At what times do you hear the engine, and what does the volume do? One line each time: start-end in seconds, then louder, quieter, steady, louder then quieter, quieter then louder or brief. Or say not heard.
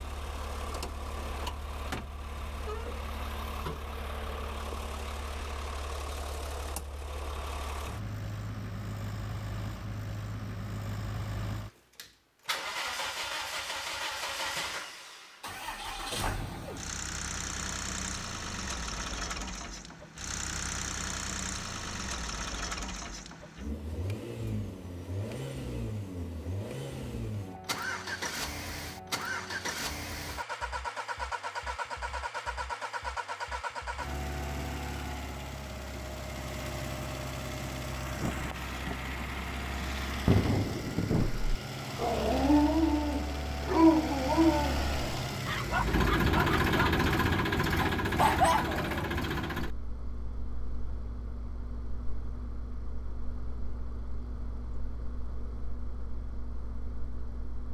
0.0-57.6 louder.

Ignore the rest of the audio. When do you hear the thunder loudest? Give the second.
40 s.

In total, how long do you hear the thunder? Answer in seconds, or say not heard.
3 s.